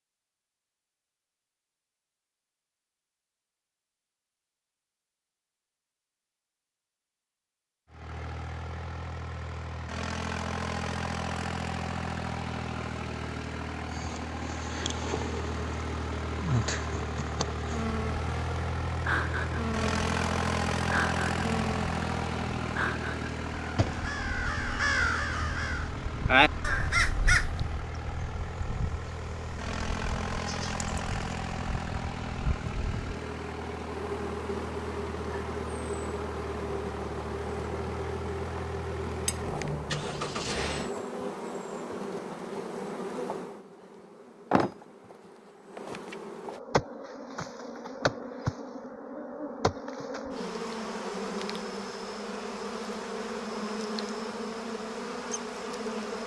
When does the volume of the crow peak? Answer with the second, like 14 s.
26 s.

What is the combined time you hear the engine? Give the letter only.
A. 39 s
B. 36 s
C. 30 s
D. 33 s
D.